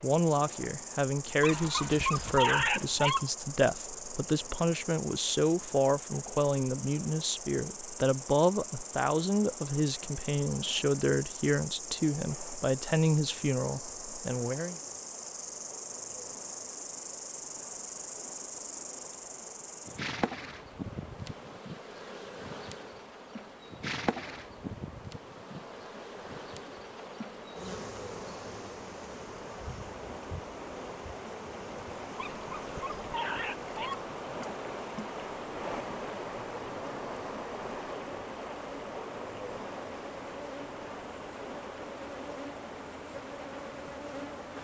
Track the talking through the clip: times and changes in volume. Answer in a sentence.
The talking can be heard from 0.0 to 14.8 s, at a steady volume.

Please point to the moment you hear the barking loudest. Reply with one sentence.
The volume of the barking peaks at 3 seconds.